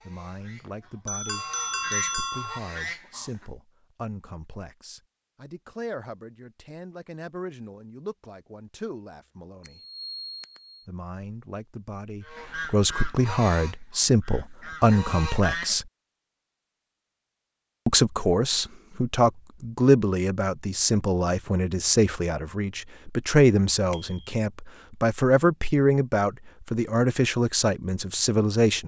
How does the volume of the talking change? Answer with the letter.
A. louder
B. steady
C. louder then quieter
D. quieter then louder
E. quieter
A.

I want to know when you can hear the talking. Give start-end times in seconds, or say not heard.
0.1-9.8, 10.8-15.8, 17.9-28.8.